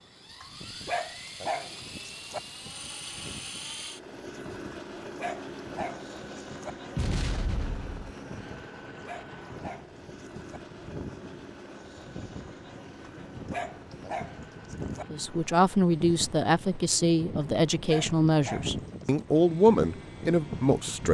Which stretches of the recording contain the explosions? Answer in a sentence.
The explosions can be heard from 7.0 to 8.2 s.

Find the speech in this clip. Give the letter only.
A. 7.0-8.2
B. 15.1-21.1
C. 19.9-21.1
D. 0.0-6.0
B.